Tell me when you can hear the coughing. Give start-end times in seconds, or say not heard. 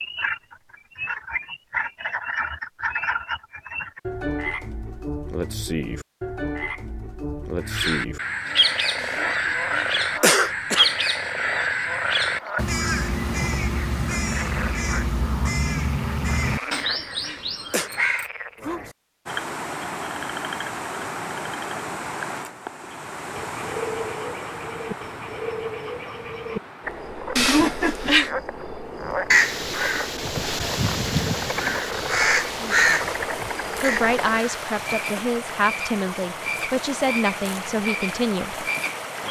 9.0-10.9, 16.5-17.9, 27.4-28.3.